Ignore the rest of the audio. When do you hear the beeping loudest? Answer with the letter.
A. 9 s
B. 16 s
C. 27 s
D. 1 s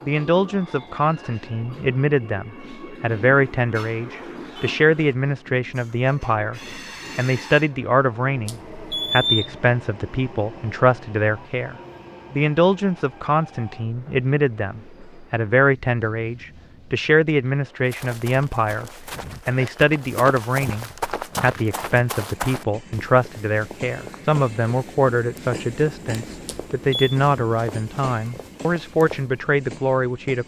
A.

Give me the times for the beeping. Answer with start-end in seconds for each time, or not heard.
8.4-9.6, 26.4-27.1.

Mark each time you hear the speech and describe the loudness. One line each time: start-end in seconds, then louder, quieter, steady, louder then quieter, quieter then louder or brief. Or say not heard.
0.1-30.4 steady.